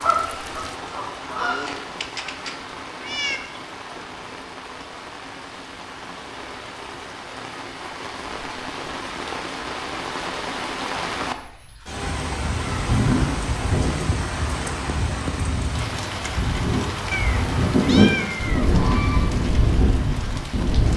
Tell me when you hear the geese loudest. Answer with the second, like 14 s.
18 s.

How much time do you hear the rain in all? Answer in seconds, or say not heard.
21 s.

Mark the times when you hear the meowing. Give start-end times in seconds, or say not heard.
1.4-3.4, 17.1-18.8.